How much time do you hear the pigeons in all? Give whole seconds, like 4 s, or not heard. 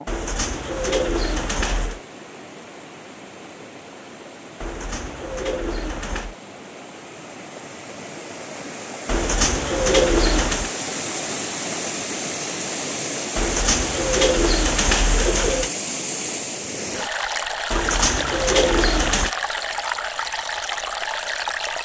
9 s.